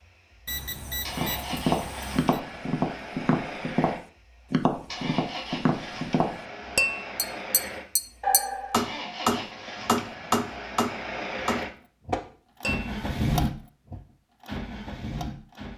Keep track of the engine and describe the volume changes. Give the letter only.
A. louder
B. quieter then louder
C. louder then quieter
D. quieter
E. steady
A.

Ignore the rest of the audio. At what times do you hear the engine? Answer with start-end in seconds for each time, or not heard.
0.0-15.7.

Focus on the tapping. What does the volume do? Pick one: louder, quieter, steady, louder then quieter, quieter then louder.
steady.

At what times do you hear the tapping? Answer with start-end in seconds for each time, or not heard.
1.1-12.9.